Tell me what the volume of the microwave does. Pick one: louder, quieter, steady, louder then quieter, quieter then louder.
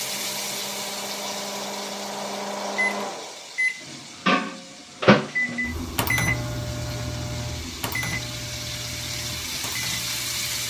louder then quieter.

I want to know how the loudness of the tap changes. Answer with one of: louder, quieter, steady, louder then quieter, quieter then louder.
quieter then louder.